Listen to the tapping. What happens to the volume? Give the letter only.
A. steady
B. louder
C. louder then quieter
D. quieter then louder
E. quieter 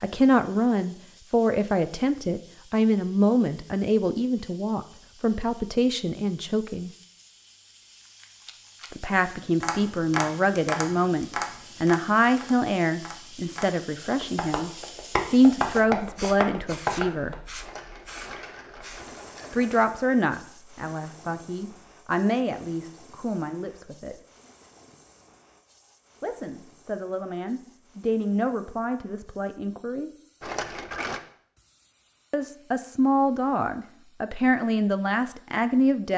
D.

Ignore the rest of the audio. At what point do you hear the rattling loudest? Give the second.
31 s.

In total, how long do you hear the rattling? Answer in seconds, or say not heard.
4 s.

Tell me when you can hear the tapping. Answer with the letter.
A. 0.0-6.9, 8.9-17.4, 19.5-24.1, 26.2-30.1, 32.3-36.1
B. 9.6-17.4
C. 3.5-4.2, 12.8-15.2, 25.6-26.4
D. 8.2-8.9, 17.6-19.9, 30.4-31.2
B.